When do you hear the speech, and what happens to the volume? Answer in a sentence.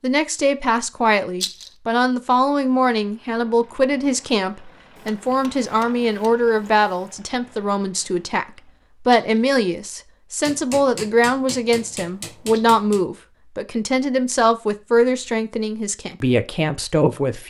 The speech can be heard from 0.0 to 17.4 s, at a steady volume.